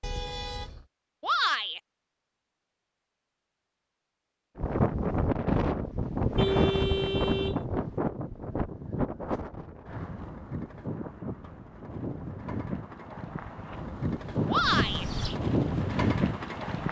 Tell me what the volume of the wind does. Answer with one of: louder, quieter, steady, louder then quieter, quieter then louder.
quieter then louder.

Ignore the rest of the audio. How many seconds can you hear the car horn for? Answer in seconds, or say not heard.
3 s.